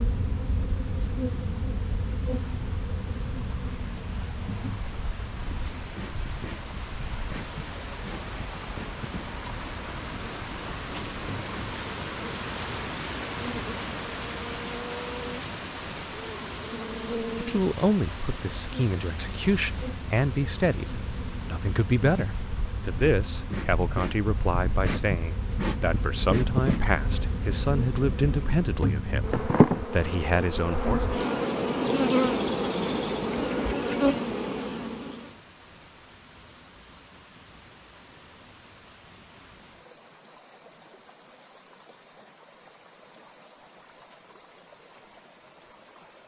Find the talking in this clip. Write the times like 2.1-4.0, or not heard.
17.4-31.1.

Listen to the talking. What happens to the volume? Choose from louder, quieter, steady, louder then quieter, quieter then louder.
steady.